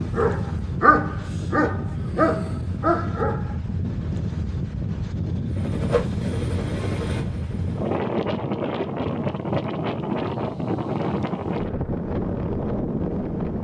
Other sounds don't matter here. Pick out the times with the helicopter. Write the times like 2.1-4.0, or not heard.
5.5-7.9.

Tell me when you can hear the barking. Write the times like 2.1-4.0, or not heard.
0.0-3.5.